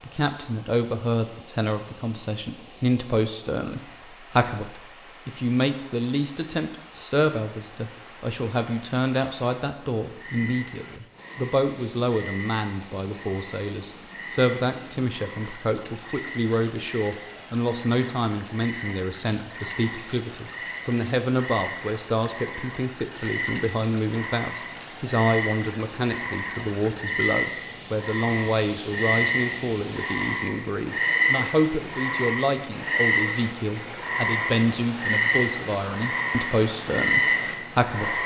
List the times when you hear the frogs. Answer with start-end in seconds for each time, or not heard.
10.1-38.2.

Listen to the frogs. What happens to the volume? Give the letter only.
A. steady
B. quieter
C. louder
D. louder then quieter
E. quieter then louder
C.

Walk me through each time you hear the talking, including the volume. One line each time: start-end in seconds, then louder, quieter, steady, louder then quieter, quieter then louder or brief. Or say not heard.
0.0-38.2 steady.